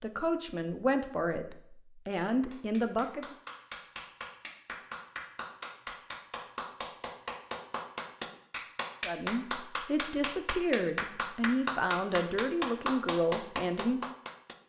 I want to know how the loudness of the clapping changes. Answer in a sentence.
The loudness of the clapping goes up.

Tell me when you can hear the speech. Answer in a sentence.
You can hear the speech from 0.0 to 3.4 s and from 9.1 to 14.1 s.